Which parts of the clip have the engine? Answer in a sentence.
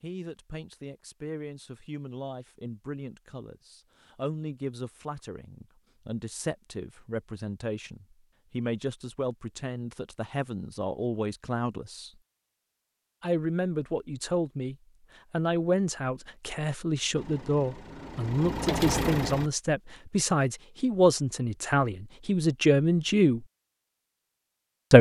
You can hear the engine from 17.1 to 19.5 s.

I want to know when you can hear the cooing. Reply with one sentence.
You can't hear the cooing here.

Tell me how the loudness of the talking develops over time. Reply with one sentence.
The loudness of the talking goes up.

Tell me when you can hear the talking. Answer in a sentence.
The talking can be heard from 0.0 to 12.1 s and from 13.2 to 23.4 s.